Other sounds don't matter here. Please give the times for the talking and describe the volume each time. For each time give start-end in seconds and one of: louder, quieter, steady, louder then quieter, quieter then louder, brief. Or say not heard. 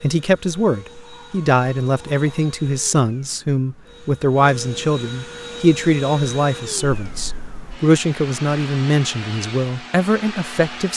0.0-10.9 steady.